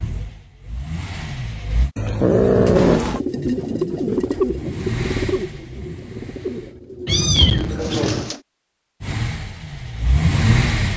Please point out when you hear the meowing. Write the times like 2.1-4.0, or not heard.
1.9-3.2, 7.0-8.3.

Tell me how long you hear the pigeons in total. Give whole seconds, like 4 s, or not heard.
6 s.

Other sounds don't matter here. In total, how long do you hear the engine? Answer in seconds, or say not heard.
6 s.